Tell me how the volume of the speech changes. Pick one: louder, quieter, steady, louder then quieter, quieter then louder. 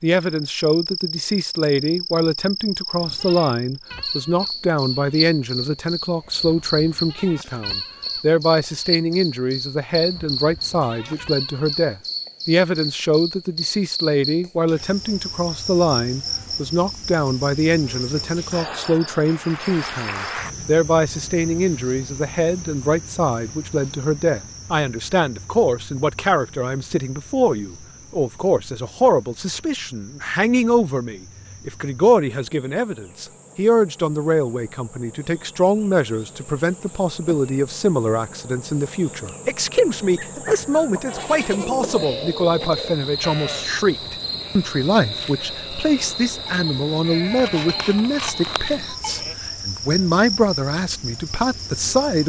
steady.